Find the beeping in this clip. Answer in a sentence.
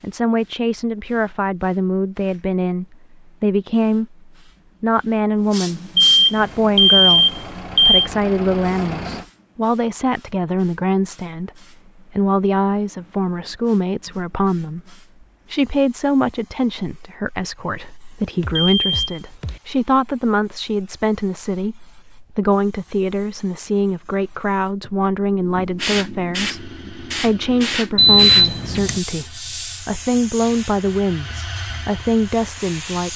You can hear the beeping from 6.0 to 8.1 s, from 18.4 to 19.6 s and from 27.9 to 29.0 s.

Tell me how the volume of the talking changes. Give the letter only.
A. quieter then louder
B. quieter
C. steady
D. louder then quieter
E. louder
C.